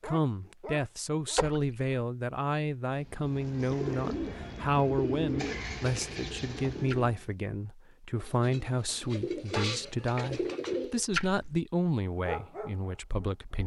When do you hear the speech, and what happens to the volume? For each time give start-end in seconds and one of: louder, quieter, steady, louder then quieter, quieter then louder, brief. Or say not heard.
0.0-13.6 steady.